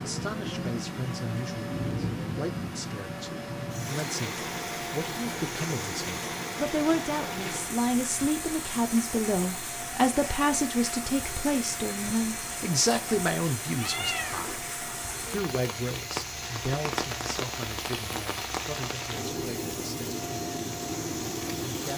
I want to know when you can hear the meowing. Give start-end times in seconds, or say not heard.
13.8-14.6.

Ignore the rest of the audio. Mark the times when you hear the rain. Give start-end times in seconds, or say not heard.
0.0-21.9.